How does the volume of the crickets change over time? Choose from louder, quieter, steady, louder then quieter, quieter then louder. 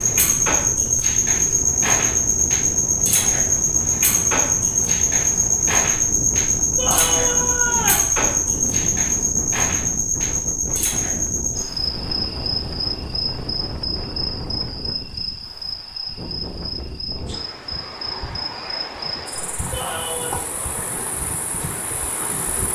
quieter.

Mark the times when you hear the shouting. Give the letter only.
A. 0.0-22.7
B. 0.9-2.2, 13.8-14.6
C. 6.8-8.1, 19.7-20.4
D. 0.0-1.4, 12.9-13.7
C.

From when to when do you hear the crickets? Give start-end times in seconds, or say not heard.
0.0-22.7.